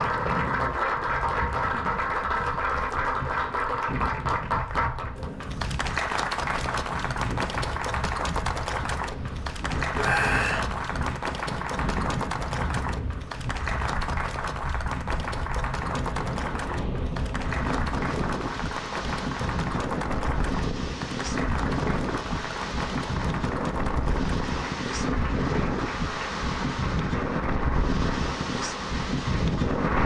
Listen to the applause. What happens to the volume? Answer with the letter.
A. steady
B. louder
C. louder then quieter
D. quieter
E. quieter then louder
D.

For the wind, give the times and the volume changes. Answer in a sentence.
You can hear the wind from 0.0 to 30.0 s, getting louder.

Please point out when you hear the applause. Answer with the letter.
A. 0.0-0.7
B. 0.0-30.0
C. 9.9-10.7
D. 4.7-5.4
B.